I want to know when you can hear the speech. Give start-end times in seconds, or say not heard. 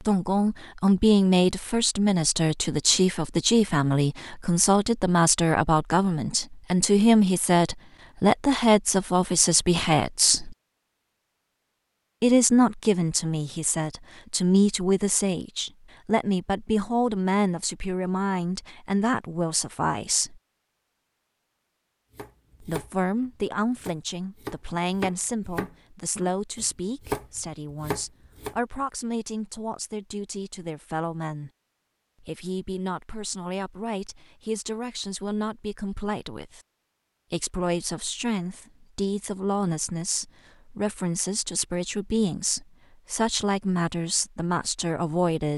0.0-10.6, 12.2-20.4, 22.6-31.5, 32.2-36.6, 37.3-45.5.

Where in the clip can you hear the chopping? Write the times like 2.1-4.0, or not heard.
22.1-28.6.